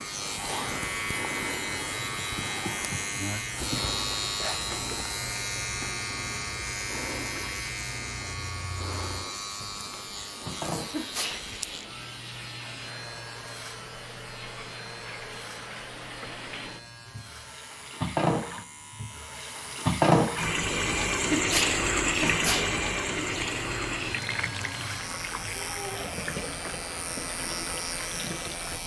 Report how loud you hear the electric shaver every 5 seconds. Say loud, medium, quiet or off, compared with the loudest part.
loud, loud, medium, quiet, medium, medium.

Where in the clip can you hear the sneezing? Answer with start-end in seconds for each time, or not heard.
10.9-11.4, 21.3-22.8.